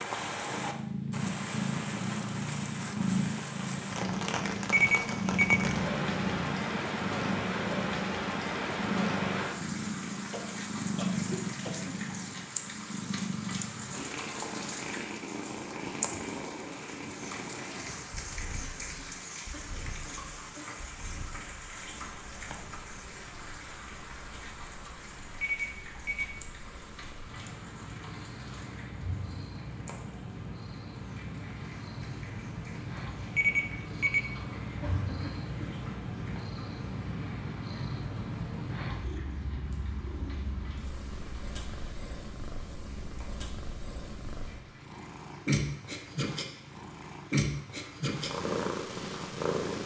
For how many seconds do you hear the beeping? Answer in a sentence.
You can hear the beeping for 3 seconds altogether.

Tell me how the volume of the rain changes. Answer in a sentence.
The loudness of the rain goes down.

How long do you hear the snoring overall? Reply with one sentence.
The snoring can't be heard in this clip.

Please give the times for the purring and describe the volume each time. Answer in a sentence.
You can hear the purring from 0.2 to 49.8 s, getting quieter then louder.